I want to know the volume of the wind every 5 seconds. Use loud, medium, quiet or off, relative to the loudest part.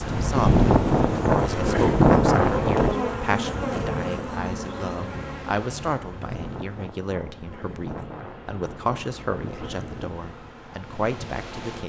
loud, quiet, quiet.